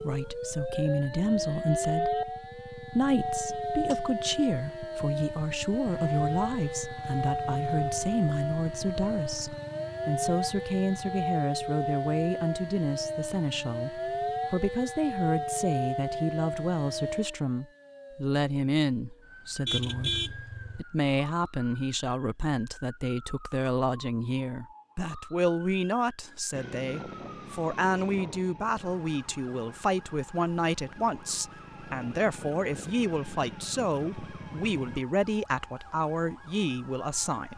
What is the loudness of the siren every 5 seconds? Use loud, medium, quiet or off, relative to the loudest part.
loud, loud, loud, loud, quiet, quiet, quiet, quiet.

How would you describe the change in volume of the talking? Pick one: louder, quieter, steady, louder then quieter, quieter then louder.
steady.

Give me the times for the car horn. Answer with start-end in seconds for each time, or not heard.
19.6-20.9.